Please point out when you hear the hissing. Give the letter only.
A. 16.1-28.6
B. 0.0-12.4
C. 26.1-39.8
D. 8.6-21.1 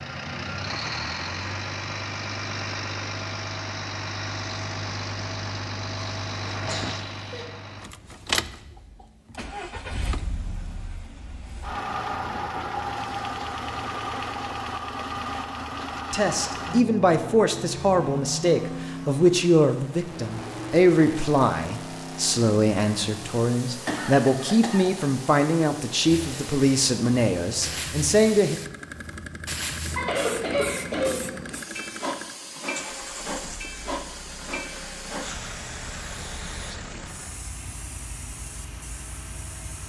C.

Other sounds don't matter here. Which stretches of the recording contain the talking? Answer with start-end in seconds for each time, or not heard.
16.1-28.6.